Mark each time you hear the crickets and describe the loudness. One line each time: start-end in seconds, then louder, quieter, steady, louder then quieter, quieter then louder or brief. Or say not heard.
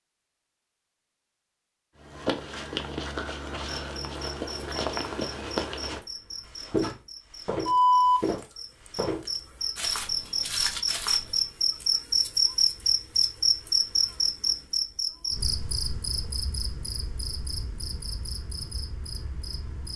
3.8-19.9 louder then quieter.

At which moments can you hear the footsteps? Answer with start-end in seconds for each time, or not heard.
2.0-11.4.